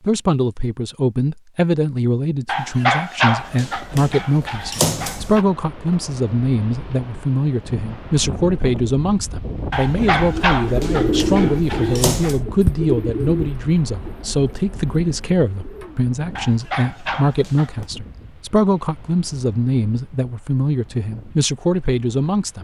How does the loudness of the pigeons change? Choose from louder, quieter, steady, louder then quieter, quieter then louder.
quieter.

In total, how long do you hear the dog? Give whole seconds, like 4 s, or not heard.
7 s.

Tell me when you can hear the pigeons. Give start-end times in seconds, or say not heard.
10.2-16.1.